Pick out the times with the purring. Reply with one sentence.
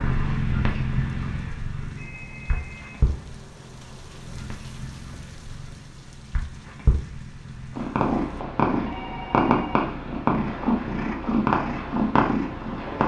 The purring can be heard from 0.0 to 13.0 s.